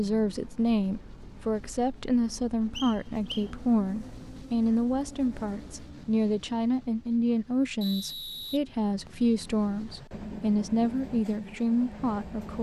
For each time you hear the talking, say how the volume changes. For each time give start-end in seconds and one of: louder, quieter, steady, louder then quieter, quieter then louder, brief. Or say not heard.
0.0-12.5 steady.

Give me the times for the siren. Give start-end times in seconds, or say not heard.
not heard.